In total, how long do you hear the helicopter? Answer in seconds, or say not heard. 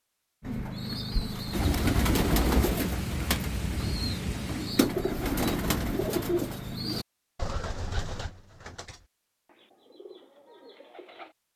not heard.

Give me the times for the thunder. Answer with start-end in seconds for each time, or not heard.
1.5-4.8.